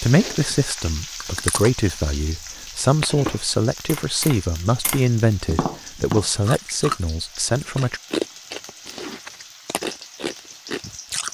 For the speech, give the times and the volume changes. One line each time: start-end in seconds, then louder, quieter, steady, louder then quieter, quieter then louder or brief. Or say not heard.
0.0-8.0 steady.